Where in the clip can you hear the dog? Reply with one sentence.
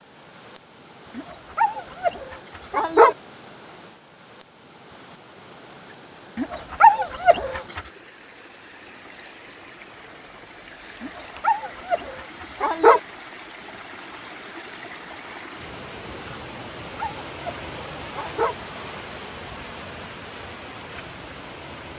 The dog can be heard from 1.1 to 3.1 s, from 6.3 to 7.8 s, from 11.0 to 13.0 s and from 16.6 to 18.6 s.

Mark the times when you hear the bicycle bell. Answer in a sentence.
The bicycle bell can't be heard in this clip.